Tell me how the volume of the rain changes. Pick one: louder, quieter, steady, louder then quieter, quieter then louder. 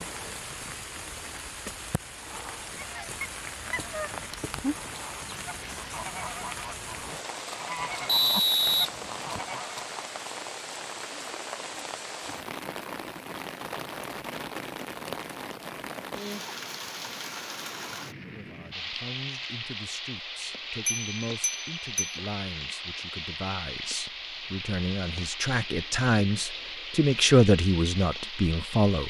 steady.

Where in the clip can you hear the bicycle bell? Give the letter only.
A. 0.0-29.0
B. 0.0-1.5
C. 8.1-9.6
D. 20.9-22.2
D.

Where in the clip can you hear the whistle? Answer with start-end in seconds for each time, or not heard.
8.1-9.6.